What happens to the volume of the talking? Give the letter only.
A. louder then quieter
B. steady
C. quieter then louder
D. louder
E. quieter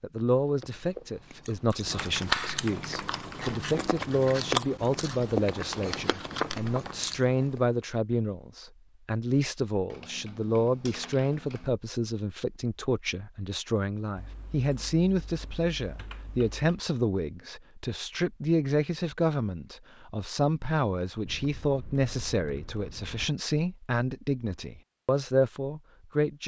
B.